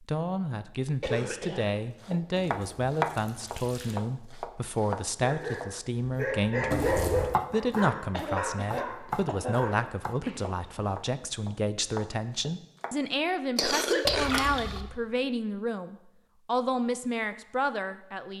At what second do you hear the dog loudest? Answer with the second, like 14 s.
7 s.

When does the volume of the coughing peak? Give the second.
14 s.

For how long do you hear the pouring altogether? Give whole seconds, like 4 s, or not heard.
3 s.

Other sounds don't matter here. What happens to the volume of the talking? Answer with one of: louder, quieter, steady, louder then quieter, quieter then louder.
steady.